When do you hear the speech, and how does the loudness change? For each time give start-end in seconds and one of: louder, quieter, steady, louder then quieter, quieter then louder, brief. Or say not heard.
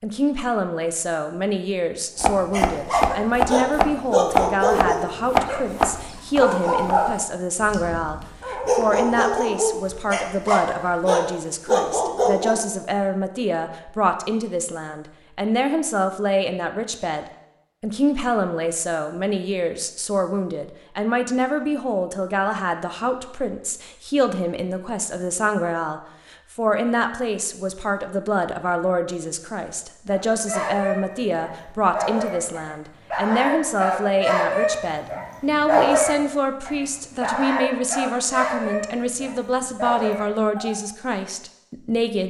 0.0-42.2 steady.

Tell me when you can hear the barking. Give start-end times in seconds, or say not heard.
2.5-12.6, 30.1-40.8.